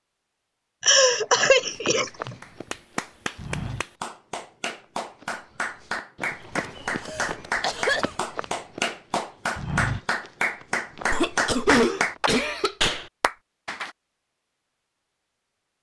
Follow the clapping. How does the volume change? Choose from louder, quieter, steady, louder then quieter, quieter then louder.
louder.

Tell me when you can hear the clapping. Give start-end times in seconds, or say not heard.
2.4-13.9.